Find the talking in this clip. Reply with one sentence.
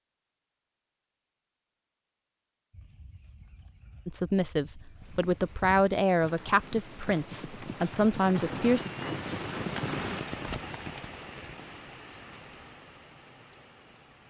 You can hear the talking from 4.0 to 8.8 s.